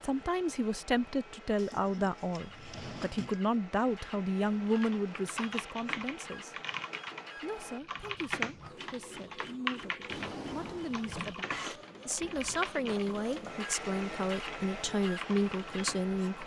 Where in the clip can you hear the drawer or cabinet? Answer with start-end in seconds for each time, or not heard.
1.6-3.4, 10.1-11.4.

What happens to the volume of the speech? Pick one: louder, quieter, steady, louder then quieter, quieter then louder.
quieter then louder.